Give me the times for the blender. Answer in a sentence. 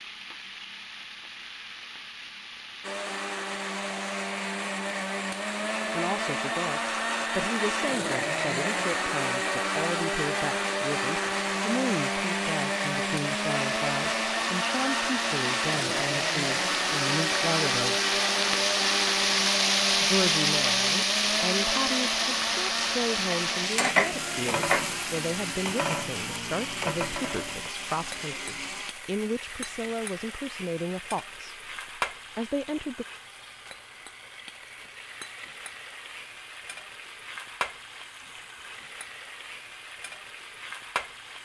You can hear the blender from 2.8 to 28.9 s.